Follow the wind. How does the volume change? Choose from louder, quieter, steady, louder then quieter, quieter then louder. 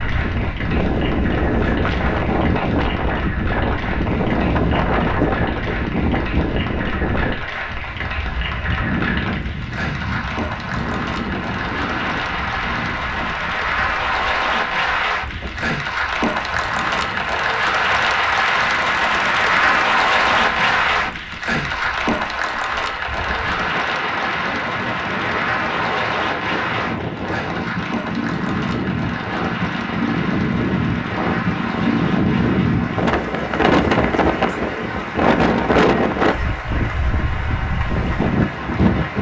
quieter then louder.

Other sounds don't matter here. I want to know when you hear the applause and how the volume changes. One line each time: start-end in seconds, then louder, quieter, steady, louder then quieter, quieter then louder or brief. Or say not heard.
0.0-39.1 louder then quieter.